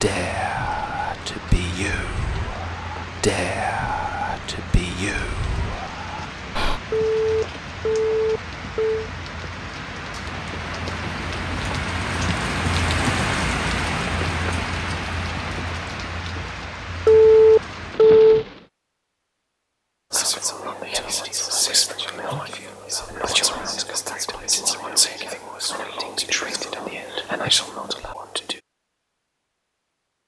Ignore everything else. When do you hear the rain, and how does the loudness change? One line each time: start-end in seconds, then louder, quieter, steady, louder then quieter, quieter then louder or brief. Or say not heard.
0.0-18.7 louder then quieter.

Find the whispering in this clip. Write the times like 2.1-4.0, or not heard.
0.0-6.8, 20.1-28.6.